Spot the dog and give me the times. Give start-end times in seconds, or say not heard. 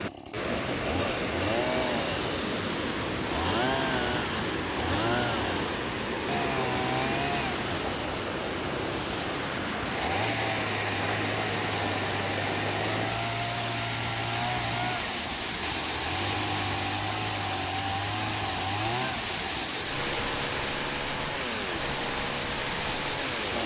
not heard.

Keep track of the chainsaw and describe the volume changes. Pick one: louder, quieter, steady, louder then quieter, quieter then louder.
steady.